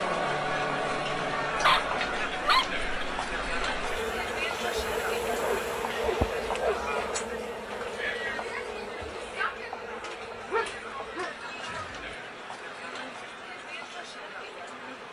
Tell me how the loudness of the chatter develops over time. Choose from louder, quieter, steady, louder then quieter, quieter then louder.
quieter.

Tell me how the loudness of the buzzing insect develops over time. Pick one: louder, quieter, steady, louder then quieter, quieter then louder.
louder then quieter.